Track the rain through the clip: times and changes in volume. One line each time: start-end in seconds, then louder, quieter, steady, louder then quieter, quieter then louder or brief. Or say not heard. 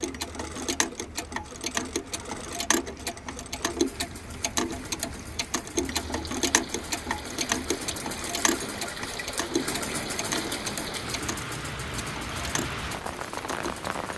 0.0-14.1 louder.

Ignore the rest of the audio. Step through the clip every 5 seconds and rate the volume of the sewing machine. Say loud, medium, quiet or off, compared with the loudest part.
medium, loud, loud.